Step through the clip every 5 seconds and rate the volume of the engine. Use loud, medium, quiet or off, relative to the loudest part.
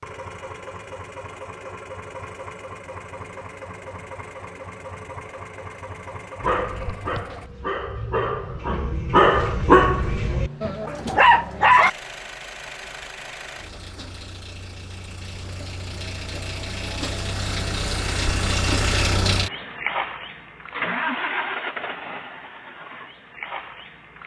medium, medium, medium, loud, loud.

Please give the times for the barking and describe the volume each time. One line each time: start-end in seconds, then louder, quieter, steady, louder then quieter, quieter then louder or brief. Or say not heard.
6.4-11.9 louder.